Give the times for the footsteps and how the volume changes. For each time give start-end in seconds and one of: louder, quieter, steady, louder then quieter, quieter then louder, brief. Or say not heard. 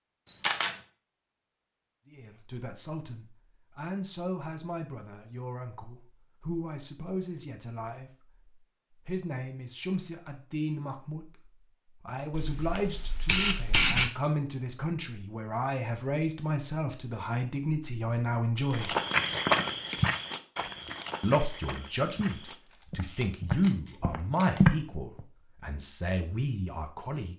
18.7-25.2 quieter then louder.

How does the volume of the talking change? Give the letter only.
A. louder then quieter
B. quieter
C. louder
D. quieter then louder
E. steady
C.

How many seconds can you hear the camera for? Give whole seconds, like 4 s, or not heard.
4 s.